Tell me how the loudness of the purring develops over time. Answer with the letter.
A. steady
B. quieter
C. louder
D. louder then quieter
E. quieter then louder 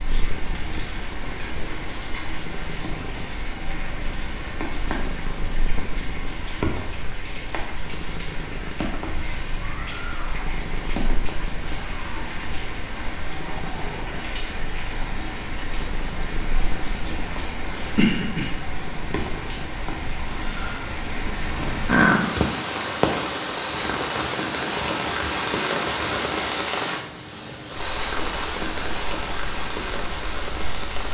D.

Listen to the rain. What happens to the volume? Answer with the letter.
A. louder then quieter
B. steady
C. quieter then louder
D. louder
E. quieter
D.